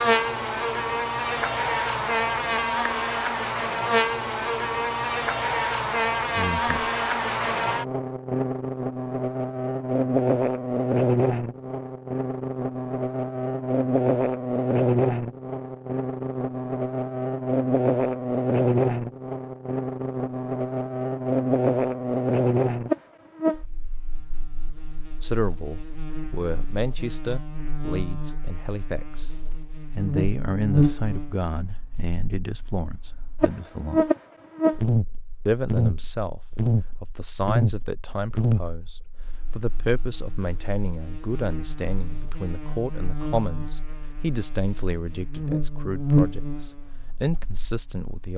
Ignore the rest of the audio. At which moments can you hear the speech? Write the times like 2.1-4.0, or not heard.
6.3-6.9, 25.2-29.3, 29.9-34.1, 35.5-48.3.